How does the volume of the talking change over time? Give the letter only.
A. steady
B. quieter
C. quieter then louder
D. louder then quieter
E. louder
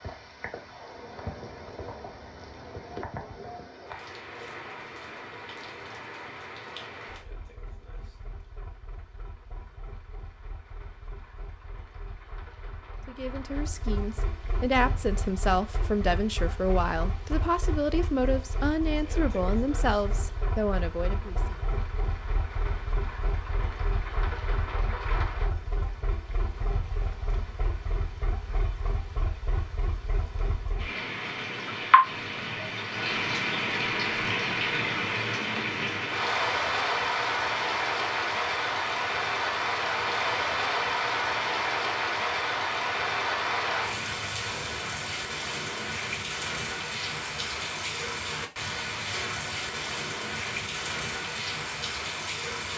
A.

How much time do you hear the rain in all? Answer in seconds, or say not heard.
53 s.